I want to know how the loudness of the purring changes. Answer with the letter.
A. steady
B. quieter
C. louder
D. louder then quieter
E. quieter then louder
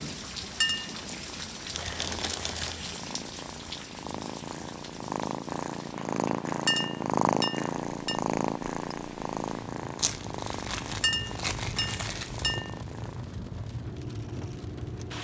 D.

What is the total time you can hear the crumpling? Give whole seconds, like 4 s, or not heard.
4 s.